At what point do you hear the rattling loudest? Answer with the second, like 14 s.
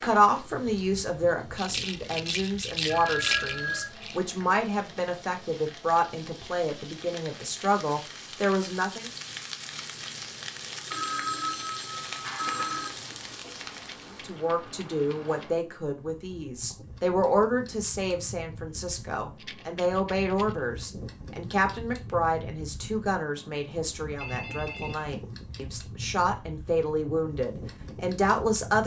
3 s.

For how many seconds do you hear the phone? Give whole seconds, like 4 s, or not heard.
4 s.